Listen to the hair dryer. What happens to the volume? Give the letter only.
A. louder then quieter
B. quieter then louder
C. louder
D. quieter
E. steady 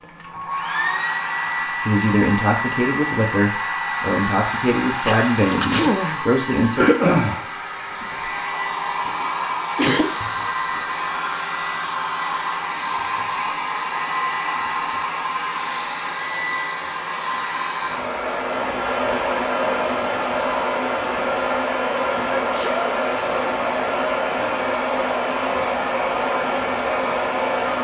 E.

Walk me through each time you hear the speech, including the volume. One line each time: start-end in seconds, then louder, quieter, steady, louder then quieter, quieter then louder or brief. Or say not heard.
1.9-6.9 steady.